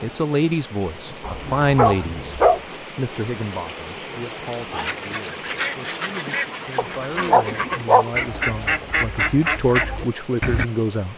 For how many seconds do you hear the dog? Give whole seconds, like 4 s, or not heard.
3 s.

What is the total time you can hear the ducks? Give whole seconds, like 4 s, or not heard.
6 s.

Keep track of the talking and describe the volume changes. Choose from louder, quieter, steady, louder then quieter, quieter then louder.
quieter then louder.